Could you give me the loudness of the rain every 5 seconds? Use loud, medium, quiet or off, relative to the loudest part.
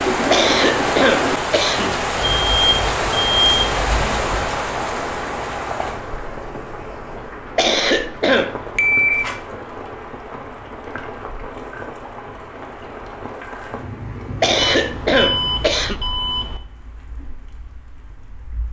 loud, medium, quiet, quiet.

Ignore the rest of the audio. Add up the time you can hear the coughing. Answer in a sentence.
The coughing can be heard for 4 seconds in total.